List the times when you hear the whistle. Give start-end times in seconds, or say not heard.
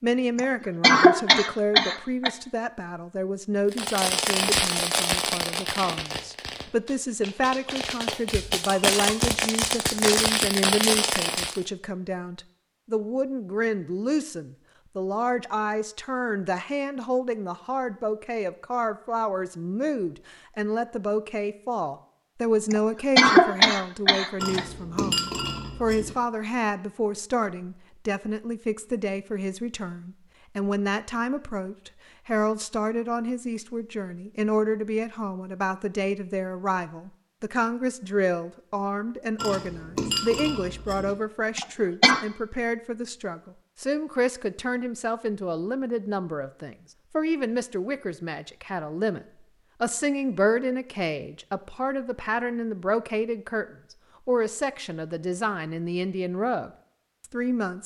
not heard.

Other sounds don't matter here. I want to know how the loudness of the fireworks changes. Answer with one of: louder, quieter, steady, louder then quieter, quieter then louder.
quieter then louder.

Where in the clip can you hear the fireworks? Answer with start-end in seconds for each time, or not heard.
3.7-11.7.